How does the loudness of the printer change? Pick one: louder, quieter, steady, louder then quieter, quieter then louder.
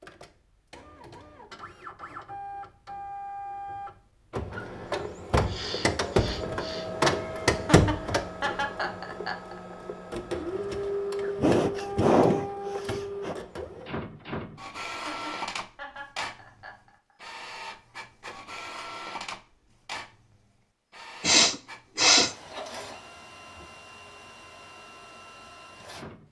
louder then quieter.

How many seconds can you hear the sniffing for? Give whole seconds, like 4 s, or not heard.
5 s.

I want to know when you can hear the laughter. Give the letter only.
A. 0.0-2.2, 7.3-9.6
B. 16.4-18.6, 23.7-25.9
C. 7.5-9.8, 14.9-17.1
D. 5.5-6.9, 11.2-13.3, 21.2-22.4
C.